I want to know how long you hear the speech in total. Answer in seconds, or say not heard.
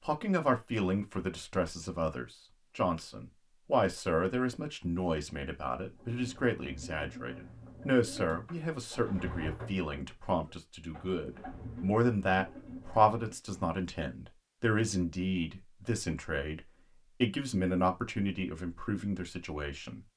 20 s.